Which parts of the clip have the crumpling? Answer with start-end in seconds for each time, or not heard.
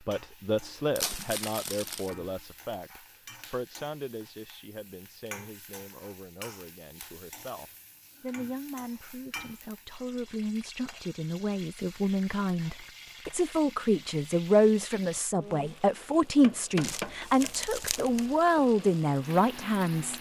0.9-2.1, 16.8-18.2.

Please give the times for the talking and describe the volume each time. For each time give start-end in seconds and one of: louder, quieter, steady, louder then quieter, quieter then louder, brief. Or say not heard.
0.1-20.1 quieter then louder.